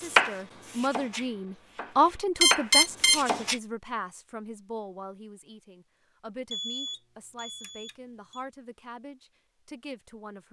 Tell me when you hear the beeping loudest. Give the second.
3 s.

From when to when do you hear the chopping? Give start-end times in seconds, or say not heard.
0.0-3.6.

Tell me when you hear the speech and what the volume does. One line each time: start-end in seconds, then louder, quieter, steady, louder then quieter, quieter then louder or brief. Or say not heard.
0.0-10.4 quieter.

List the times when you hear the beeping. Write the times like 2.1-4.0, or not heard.
2.4-3.2, 6.5-8.4.